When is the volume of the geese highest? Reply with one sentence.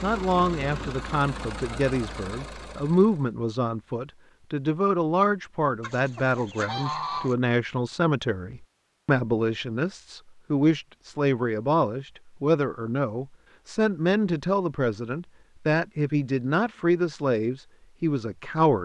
The volume of the geese peaks at 7 seconds.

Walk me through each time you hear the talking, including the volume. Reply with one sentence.
You can hear the talking from 0.0 to 18.8 s, at a steady volume.